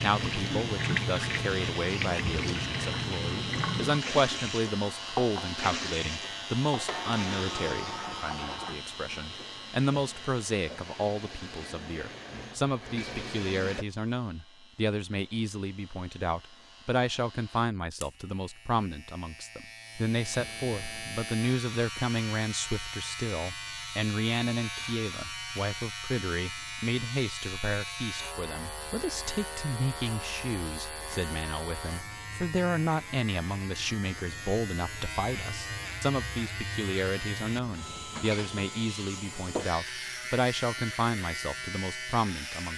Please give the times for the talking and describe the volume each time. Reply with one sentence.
You can hear the talking from 0.0 to 42.7 s, at a steady volume.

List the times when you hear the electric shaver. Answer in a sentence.
You can hear the electric shaver from 0.0 to 42.7 s.